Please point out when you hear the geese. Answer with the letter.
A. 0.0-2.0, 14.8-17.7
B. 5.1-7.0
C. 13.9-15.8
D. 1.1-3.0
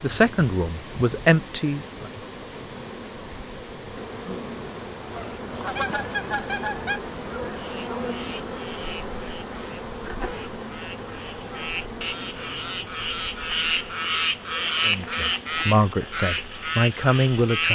B.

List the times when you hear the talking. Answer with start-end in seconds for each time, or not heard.
0.0-2.0, 14.8-17.7.